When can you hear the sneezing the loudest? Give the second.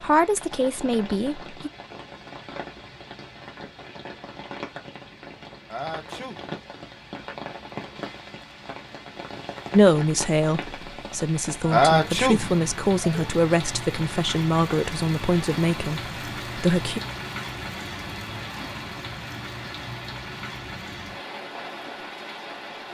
12 s.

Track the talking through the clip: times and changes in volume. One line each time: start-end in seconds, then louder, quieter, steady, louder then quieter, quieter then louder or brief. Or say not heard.
0.0-1.7 brief
9.7-17.0 steady.